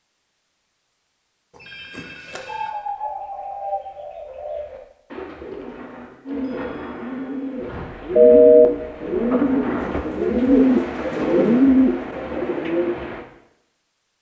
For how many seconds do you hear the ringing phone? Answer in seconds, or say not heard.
2 s.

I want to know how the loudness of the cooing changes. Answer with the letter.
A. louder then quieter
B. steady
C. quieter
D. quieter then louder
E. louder
E.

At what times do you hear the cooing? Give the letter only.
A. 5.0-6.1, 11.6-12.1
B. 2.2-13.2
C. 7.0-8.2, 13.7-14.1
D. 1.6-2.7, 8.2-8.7
B.